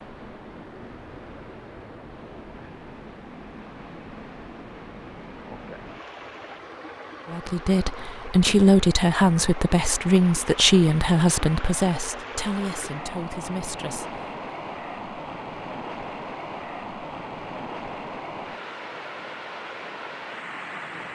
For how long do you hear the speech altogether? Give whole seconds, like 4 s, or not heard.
7 s.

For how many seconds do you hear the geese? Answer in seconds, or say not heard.
not heard.